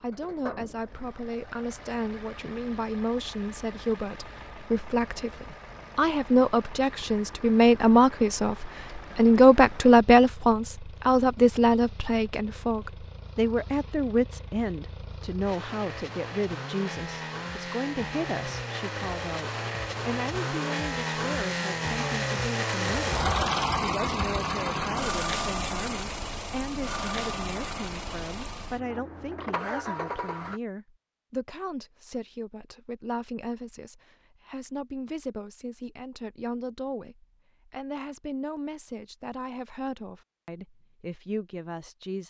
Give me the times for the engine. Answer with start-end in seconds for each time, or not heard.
0.0-30.6.